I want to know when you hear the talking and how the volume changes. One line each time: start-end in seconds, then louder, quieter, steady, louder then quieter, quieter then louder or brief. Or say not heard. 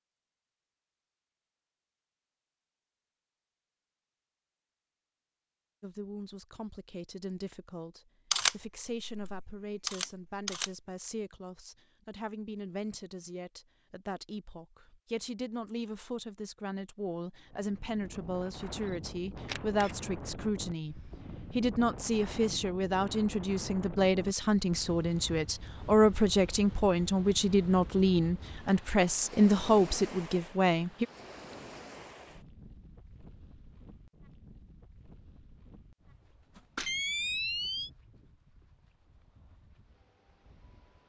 5.8-31.1 louder.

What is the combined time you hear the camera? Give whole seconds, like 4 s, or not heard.
4 s.